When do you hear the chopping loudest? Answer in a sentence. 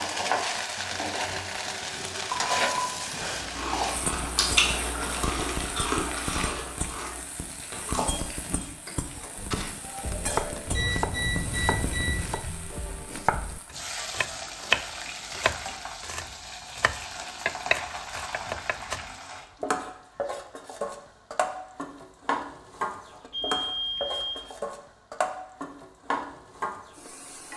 The loudest moment of the chopping is at 15 seconds.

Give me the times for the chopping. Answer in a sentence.
You can hear the chopping from 9.3 to 19.1 s.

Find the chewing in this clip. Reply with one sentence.
The chewing can be heard from 3.3 to 8.9 s.